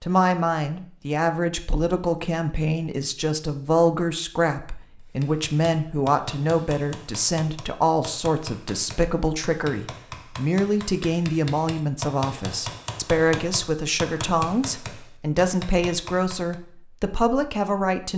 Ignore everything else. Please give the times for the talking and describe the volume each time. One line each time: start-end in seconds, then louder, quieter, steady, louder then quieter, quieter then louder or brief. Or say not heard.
0.0-18.1 steady.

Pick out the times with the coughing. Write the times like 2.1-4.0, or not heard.
not heard.